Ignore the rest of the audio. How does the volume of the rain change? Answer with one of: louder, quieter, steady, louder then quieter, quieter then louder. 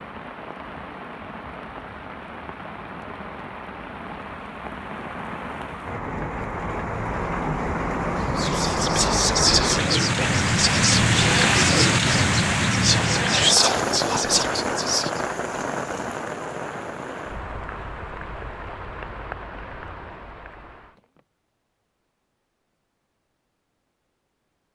louder then quieter.